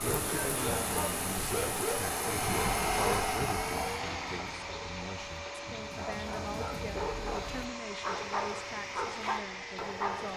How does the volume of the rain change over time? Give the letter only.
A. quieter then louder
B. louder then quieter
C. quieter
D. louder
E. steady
C.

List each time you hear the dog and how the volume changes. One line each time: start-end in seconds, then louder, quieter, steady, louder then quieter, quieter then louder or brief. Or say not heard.
0.0-10.3 quieter then louder.